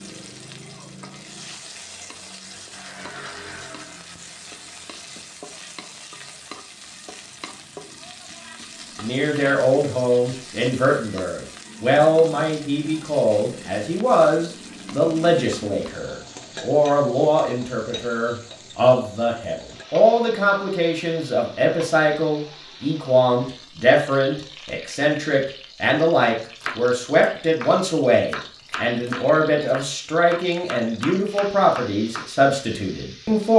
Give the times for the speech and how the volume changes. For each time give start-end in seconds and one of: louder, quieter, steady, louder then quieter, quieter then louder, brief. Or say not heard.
9.0-33.5 steady.